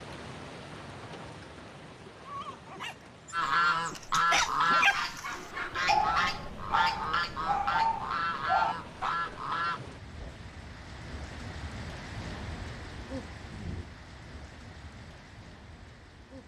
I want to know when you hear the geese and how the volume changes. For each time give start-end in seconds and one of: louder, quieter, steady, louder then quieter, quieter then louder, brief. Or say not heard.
3.3-10.3 quieter.